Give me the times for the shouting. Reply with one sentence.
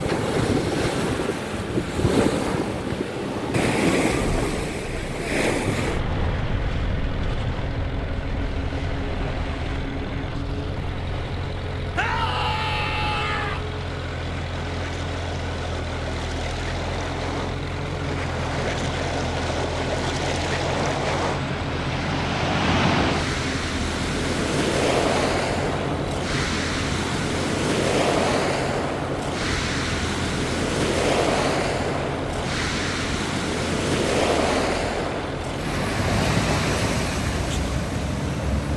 The shouting can be heard from 11.9 to 13.6 s.